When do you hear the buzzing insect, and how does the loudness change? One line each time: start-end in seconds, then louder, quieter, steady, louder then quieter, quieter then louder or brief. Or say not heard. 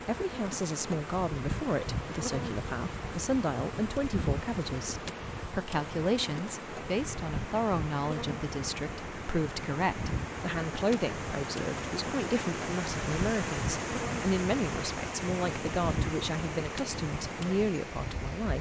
0.0-18.5 steady.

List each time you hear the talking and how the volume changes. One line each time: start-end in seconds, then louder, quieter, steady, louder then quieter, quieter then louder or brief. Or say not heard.
0.1-18.5 steady.